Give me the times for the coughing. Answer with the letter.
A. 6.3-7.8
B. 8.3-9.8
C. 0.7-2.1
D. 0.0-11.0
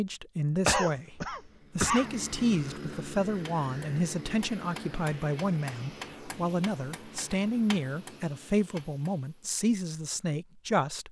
C.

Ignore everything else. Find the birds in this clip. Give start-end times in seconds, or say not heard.
not heard.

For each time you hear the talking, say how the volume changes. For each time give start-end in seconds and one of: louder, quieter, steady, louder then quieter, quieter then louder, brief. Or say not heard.
0.0-11.0 steady.